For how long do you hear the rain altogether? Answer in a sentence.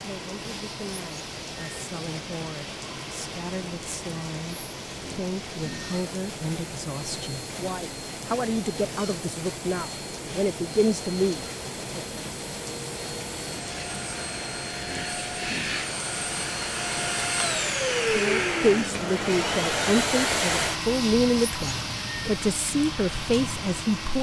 You can hear the rain for 24 seconds altogether.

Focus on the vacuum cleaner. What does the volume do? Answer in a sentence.
The volume of the vacuum cleaner goes up.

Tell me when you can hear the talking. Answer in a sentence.
The talking can be heard from 0.0 to 12.0 s and from 18.1 to 24.1 s.